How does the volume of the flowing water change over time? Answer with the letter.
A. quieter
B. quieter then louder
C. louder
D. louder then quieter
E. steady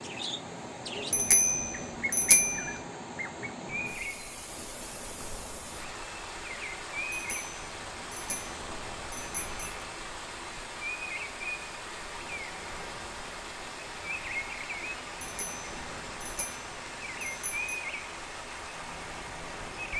E.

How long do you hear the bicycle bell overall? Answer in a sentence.
The bicycle bell can be heard for 7 seconds in total.